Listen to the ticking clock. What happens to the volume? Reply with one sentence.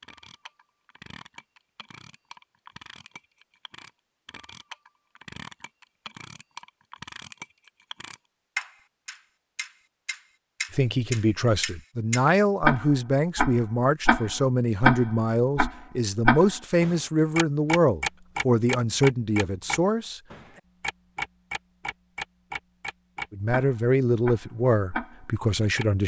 The volume of the ticking clock goes up, then down.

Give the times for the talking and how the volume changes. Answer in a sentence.
The talking can be heard from 10.7 to 20.2 s, at a steady volume; and briefly from 23.3 to 26.0 s.